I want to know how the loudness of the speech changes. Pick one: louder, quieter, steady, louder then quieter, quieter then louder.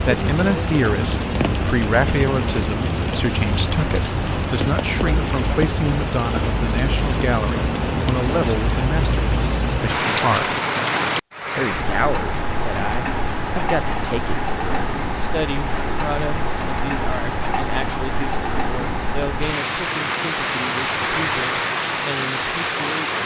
quieter.